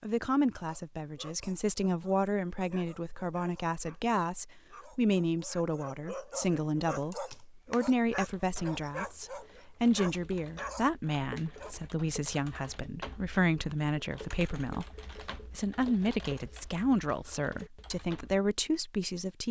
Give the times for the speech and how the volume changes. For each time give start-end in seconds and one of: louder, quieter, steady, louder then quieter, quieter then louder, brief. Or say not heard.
0.0-19.4 steady.